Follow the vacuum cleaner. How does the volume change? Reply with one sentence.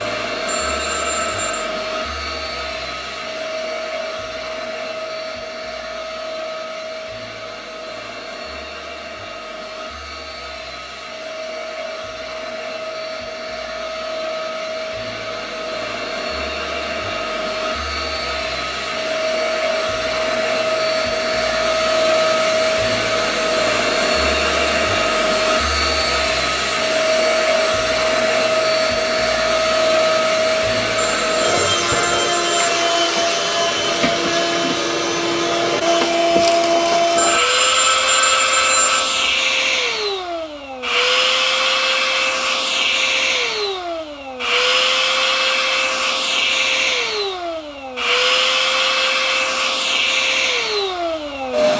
The loudness of the vacuum cleaner goes up.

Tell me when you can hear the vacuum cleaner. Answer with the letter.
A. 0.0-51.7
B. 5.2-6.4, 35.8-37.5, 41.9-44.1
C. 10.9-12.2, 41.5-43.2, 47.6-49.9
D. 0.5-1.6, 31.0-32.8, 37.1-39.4
A.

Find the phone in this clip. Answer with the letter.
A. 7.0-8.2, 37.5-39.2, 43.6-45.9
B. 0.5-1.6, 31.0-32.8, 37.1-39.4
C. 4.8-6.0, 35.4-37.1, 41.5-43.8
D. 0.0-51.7
B.